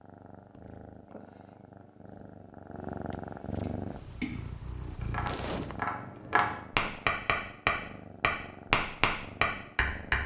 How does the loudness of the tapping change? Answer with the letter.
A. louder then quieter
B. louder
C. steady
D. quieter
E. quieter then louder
B.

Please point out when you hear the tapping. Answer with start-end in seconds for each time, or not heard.
3.6-10.2.